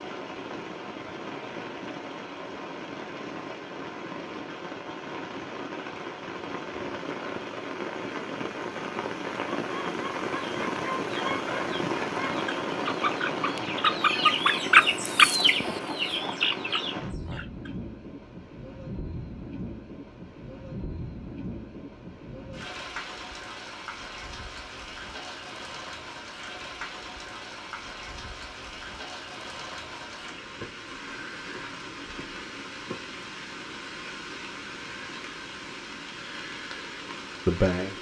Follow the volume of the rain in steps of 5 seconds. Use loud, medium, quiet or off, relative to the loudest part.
medium, loud, loud, medium, medium, medium, medium, medium.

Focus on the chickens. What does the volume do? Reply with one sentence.
The loudness of the chickens goes up, then down.